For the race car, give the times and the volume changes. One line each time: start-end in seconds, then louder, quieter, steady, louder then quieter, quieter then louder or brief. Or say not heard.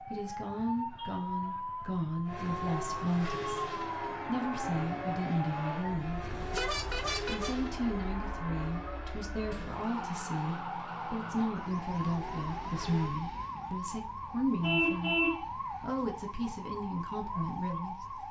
2.2-13.2 quieter.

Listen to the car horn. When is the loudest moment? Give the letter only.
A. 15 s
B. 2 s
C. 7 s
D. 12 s
A.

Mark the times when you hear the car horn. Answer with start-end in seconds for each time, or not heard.
6.3-7.5, 14.6-15.4.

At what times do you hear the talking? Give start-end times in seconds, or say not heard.
0.1-6.3, 7.2-15.2, 15.8-18.1.